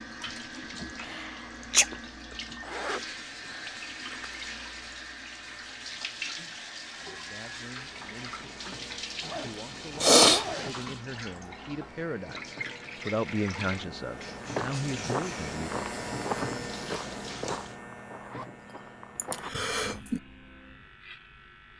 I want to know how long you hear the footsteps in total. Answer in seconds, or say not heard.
6 s.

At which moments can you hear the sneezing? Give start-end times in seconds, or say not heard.
0.8-1.9, 10.0-10.4, 19.1-20.2.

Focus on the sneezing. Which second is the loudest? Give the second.
10 s.